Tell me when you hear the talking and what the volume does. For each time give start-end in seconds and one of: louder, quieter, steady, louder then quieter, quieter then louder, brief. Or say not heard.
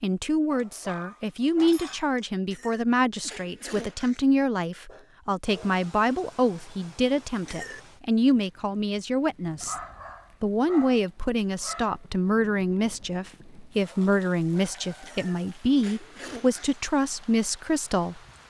0.0-9.8 steady
10.4-18.2 steady.